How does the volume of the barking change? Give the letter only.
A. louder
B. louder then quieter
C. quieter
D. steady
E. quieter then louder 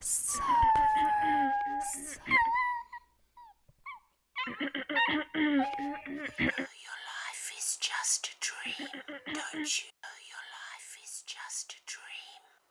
E.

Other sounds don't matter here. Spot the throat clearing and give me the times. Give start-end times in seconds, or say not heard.
0.3-2.5, 4.5-6.7, 8.7-9.7.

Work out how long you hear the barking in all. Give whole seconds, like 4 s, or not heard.
6 s.